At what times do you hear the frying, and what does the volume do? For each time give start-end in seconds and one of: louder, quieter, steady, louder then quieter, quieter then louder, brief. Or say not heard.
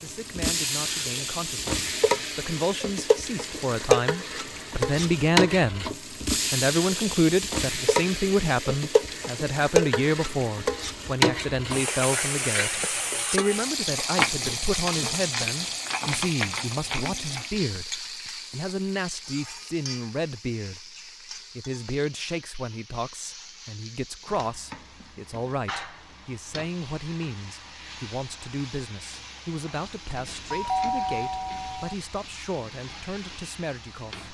0.0-34.2 quieter.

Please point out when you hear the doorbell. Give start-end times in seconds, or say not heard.
30.1-31.9.